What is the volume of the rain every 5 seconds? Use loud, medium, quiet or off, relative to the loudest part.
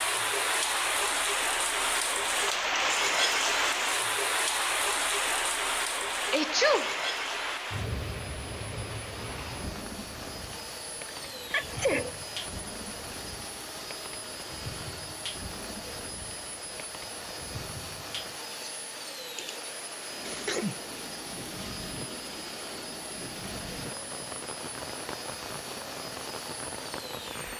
loud, medium, quiet, quiet, quiet, quiet.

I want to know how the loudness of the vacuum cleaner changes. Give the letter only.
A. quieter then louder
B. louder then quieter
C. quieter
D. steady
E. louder
D.